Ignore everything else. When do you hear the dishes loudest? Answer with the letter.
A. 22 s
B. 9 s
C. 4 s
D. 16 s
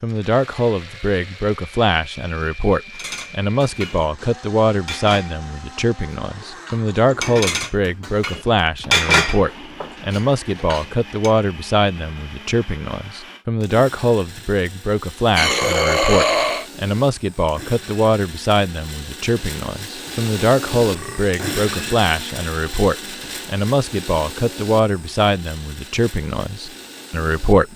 B.